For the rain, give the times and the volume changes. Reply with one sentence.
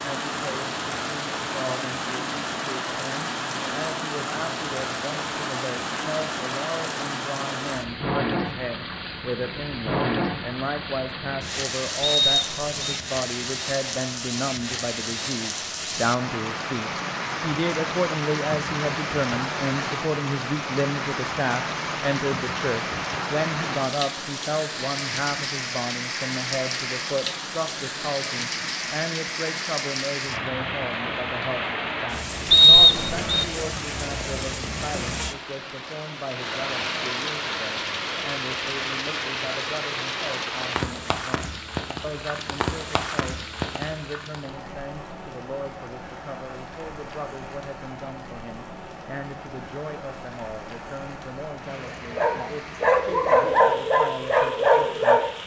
You can hear the rain from 0.0 to 55.4 s, getting quieter.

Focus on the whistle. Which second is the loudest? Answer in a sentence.
The volume of the whistle peaks at 33 seconds.